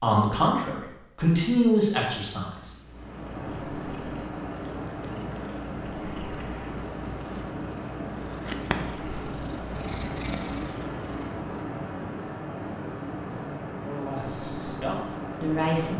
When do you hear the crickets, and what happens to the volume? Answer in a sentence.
The crickets can be heard from 2.9 to 15.9 s, at a steady volume.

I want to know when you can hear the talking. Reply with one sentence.
You can hear the talking from 0.0 to 2.7 s and from 13.8 to 15.9 s.